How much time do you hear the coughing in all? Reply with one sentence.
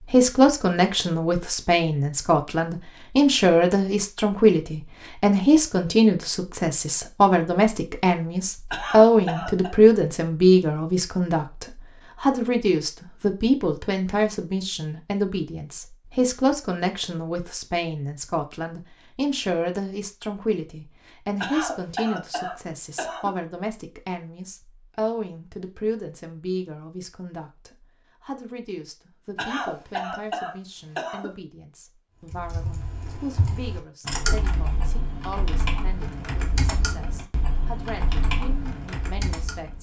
The coughing can be heard for 5 seconds in total.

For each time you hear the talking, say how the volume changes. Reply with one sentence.
You can hear the talking from 0.1 to 39.7 s, getting quieter.